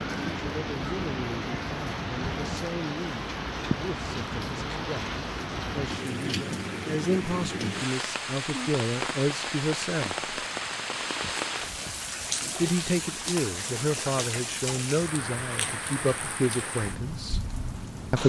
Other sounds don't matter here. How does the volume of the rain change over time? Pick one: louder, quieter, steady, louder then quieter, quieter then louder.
steady.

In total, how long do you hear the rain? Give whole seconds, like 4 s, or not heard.
18 s.